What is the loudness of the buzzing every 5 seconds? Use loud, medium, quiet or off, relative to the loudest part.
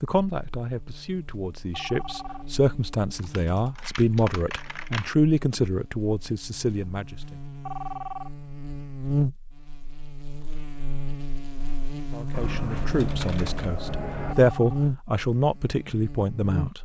quiet, loud, loud, loud.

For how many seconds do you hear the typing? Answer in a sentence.
You can hear the typing for 4 seconds altogether.